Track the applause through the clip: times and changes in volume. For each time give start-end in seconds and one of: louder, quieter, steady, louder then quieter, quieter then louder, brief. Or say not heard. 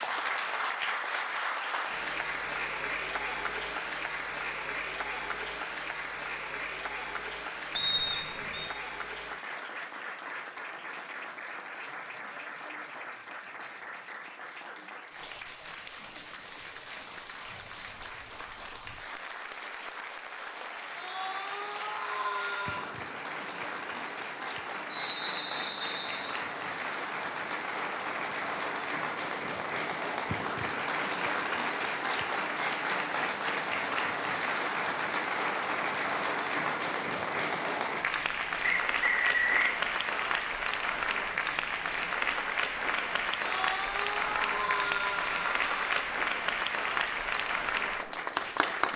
0.0-48.9 quieter then louder.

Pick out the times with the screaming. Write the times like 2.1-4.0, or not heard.
20.9-22.9, 43.4-46.0.